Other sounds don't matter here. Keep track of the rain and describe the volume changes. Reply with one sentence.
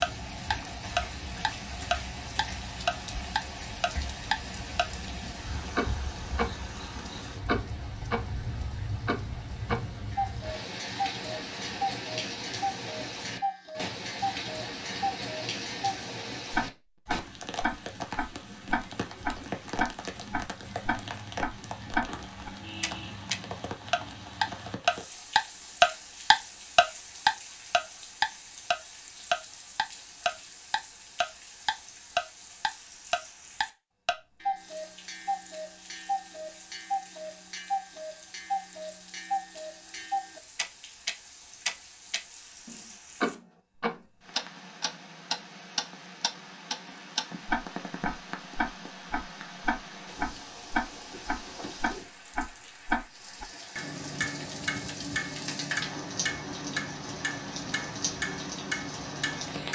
The loudness of the rain goes down, then up.